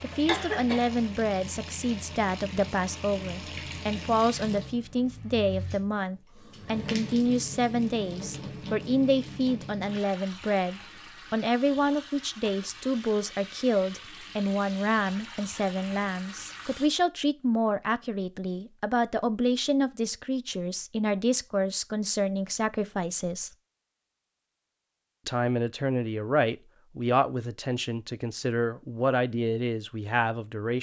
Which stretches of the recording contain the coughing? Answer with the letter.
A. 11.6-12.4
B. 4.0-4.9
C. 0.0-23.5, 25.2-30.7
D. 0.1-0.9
D.